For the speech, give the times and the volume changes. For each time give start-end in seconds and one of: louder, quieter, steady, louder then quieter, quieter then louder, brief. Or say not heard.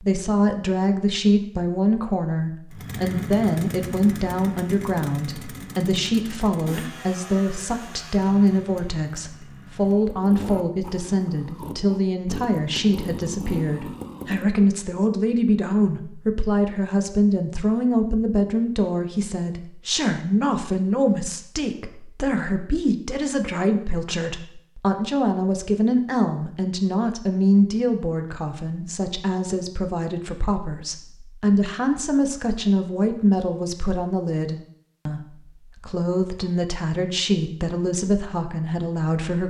0.0-39.4 steady.